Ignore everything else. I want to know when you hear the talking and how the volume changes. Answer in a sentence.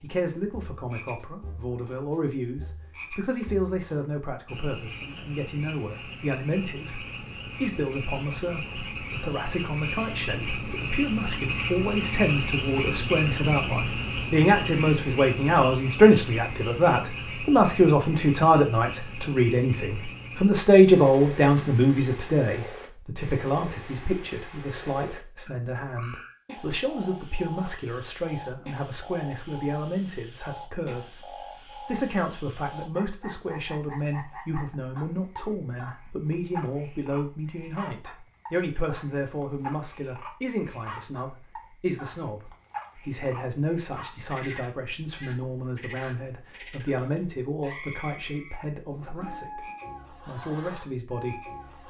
You can hear the talking from 0.0 to 49.6 s, getting louder then quieter; and briefly from 50.2 to 51.4 s.